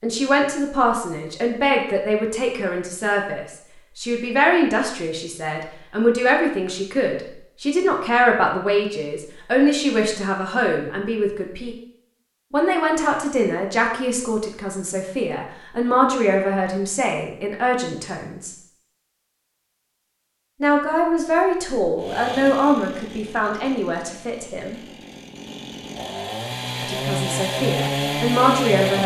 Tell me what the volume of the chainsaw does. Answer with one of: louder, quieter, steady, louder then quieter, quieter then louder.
quieter then louder.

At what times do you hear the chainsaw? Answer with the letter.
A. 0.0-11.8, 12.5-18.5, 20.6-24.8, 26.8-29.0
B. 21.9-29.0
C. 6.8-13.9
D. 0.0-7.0
B.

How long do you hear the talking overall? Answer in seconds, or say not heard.
24 s.